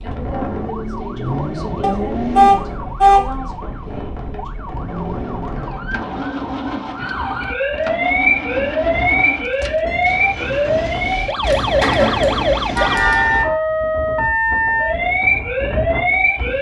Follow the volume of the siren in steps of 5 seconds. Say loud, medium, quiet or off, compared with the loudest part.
quiet, loud, loud, loud.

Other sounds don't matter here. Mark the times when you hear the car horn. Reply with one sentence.
You can hear the car horn from 1.8 to 3.2 s and from 11.4 to 13.4 s.